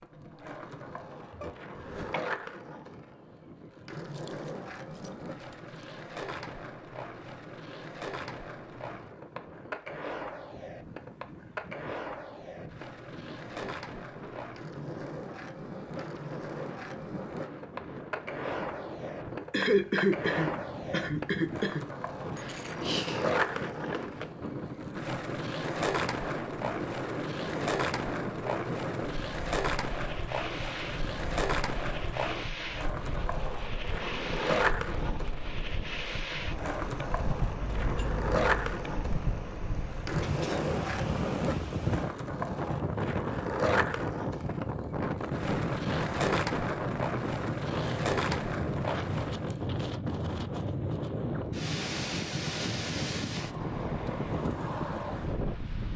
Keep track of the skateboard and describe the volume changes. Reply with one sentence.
The loudness of the skateboard goes up.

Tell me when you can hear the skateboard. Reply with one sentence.
The skateboard can be heard from 0.0 to 49.6 s.